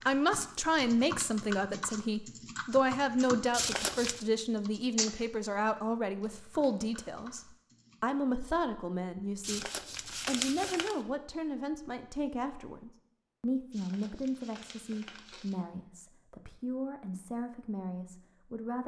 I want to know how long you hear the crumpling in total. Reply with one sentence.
You can hear the crumpling for 4 seconds altogether.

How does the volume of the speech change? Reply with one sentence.
The loudness of the speech goes down.